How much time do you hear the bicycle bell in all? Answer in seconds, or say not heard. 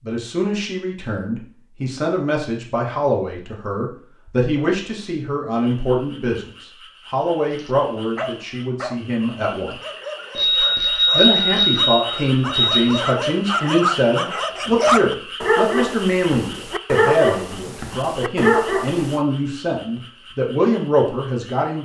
3 s.